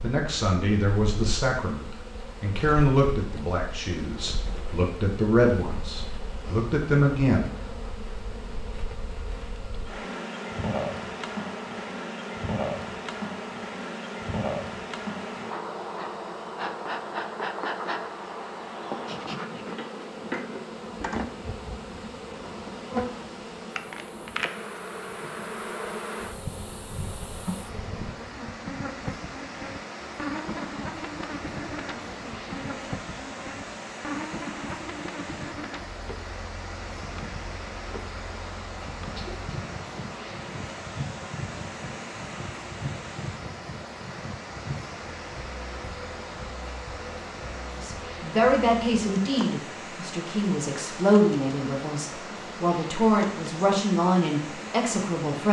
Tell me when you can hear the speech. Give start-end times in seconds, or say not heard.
0.0-7.8, 47.8-55.4.